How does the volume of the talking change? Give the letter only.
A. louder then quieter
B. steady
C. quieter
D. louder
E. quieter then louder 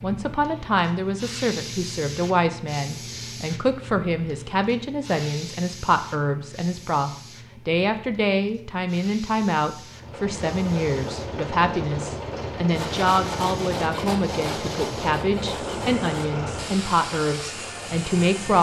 B.